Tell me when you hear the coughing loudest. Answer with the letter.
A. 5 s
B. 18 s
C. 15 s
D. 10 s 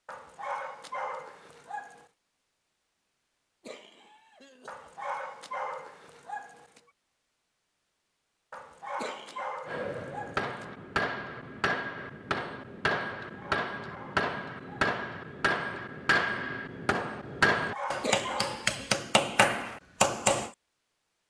B.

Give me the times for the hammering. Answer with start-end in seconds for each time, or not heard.
9.7-20.5.